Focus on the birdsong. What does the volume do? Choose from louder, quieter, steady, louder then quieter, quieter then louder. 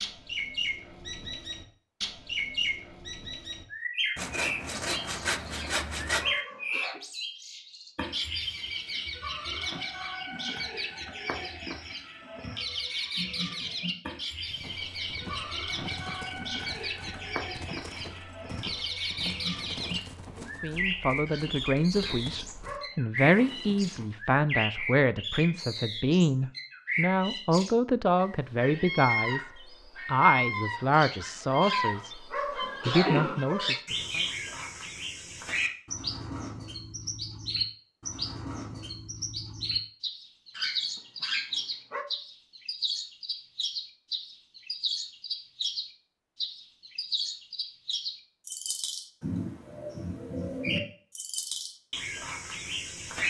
steady.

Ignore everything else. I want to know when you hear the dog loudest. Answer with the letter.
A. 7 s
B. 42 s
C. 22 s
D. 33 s
D.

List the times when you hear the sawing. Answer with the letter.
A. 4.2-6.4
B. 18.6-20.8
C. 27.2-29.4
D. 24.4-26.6
A.